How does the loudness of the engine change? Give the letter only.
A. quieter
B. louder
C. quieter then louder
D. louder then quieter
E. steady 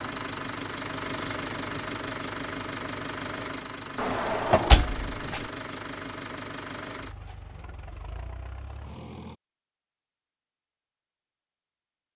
A.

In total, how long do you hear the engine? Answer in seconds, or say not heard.
9 s.